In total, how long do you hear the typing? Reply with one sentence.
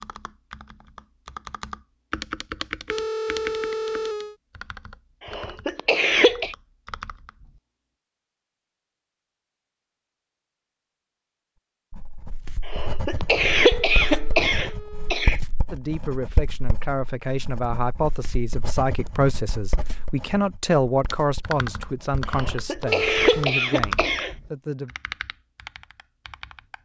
You can hear the typing for 13 seconds altogether.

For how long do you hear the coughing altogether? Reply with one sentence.
The coughing can be heard for 6 seconds in total.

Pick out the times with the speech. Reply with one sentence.
The speech can be heard from 15.7 to 24.9 s.